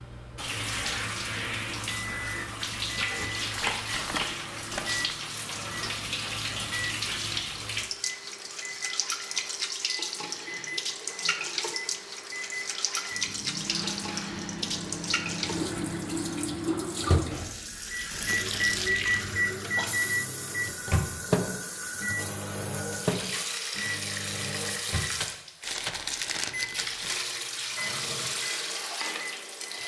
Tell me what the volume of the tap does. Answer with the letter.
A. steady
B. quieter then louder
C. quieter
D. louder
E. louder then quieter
A.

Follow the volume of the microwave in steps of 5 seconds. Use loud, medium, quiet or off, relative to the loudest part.
medium, medium, medium, loud, loud, medium.